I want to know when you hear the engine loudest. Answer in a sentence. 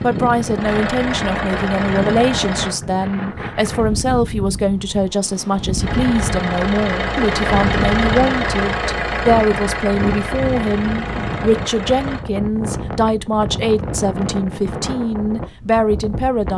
The volume of the engine peaks at 8 seconds.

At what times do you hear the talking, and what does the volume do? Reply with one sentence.
You can hear the talking from 0.0 to 16.5 s, at a steady volume.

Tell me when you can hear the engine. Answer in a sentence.
The engine can be heard from 0.0 to 2.8 s and from 5.8 to 12.2 s.